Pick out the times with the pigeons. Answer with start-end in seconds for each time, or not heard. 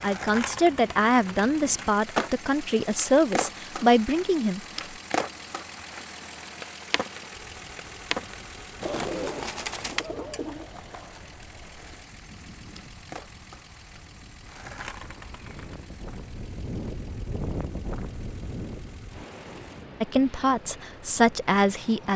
8.8-10.7.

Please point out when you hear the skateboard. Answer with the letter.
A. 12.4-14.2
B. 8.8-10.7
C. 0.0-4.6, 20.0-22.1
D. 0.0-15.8
D.